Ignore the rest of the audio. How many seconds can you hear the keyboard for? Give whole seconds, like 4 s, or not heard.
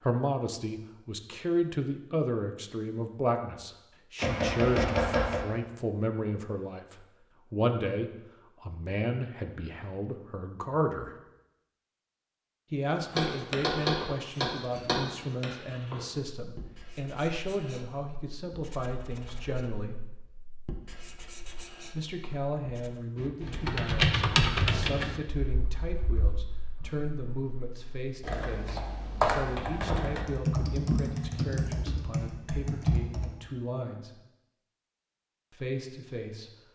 10 s.